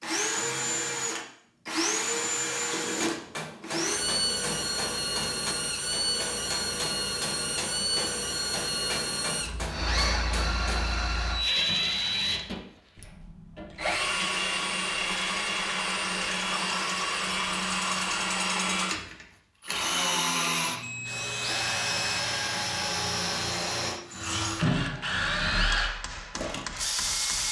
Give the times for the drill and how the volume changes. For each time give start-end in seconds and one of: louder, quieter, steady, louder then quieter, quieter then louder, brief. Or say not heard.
0.0-27.4 steady.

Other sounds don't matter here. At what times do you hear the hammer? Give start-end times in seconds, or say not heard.
3.0-11.1, 25.6-27.4.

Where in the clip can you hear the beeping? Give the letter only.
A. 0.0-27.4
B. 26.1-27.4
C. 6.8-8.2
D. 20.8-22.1
D.